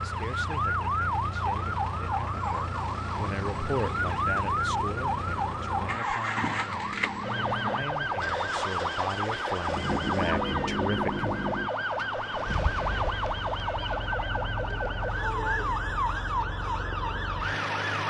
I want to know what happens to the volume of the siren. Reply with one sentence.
The volume of the siren stays about the same.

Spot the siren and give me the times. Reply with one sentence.
You can hear the siren from 0.0 to 18.0 s.